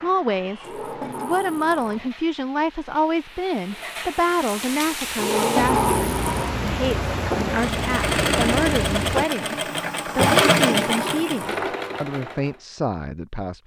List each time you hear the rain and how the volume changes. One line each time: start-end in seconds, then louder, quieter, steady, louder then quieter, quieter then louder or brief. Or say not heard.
0.0-9.2 louder.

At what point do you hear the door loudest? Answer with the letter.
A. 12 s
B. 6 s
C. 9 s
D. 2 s
B.